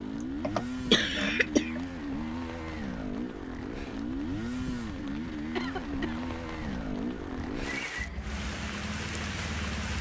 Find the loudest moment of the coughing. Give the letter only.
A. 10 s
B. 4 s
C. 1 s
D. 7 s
C.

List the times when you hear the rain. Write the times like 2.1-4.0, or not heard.
0.0-9.9.